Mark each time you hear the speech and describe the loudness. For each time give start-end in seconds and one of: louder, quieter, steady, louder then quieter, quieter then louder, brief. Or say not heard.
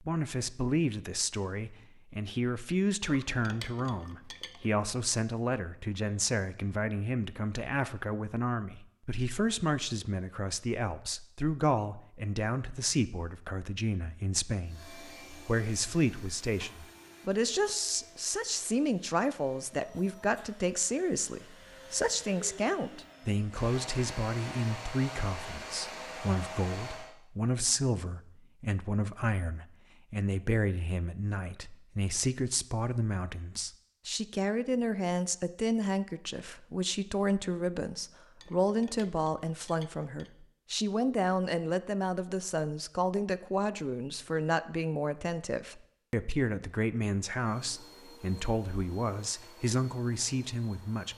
0.0-51.1 steady.